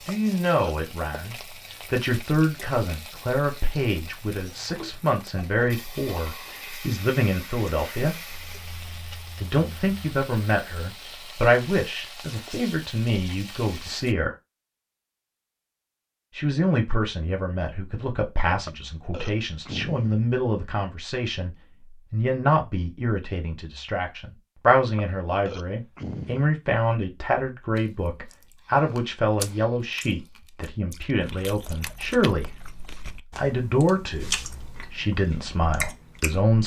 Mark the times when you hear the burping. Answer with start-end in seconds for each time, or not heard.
0.1-0.8, 18.6-20.3, 24.9-26.5.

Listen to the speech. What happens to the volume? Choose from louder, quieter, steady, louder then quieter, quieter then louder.
steady.